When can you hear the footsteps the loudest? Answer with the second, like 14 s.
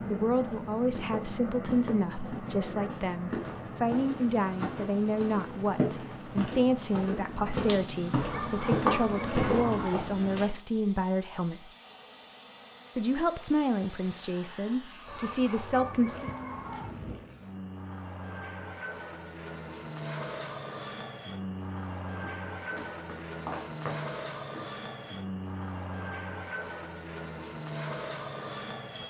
9 s.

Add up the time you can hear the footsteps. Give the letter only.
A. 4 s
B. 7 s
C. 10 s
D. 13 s
D.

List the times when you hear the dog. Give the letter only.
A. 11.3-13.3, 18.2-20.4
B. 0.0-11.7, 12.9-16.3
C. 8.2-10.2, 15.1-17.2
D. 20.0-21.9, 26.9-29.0
C.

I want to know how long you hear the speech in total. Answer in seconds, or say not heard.
15 s.